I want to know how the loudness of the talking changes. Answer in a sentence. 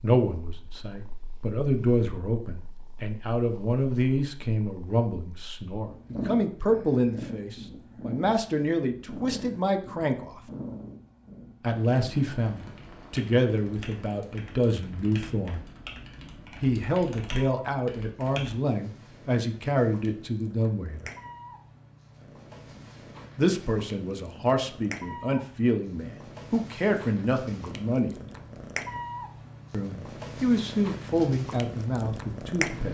The volume of the talking stays about the same.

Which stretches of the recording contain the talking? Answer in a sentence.
The talking can be heard from 0.0 to 10.4 s, from 11.6 to 15.7 s, from 16.6 to 21.1 s, from 23.4 to 28.1 s and from 29.7 to 32.8 s.